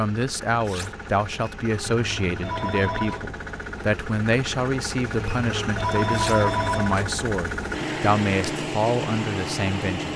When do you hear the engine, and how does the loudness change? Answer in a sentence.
You can hear the engine from 0.0 to 10.1 s, getting louder.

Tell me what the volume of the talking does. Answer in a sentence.
The volume of the talking stays about the same.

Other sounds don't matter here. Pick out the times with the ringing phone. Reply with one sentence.
You can hear the ringing phone from 1.9 to 3.2 s and from 5.2 to 7.0 s.